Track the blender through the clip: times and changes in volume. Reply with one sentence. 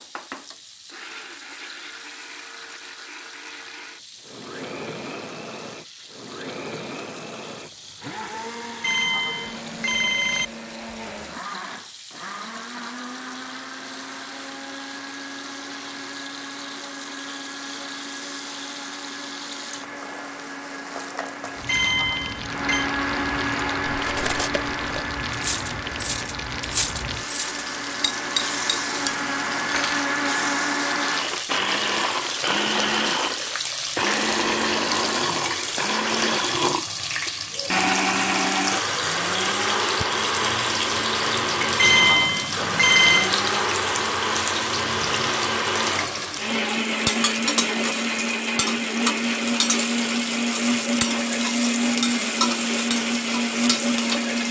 The blender can be heard from 0.0 to 54.4 s, getting louder.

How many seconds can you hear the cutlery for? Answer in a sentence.
You can hear the cutlery for 6 seconds altogether.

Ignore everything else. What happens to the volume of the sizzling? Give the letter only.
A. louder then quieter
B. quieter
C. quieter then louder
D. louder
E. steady
D.